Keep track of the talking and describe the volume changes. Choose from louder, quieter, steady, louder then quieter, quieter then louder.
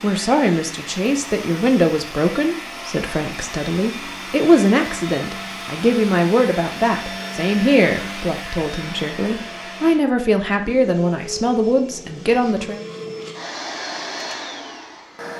steady.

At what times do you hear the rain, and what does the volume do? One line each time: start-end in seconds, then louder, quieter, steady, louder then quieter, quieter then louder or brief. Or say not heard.
not heard.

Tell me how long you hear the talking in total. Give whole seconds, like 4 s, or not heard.
13 s.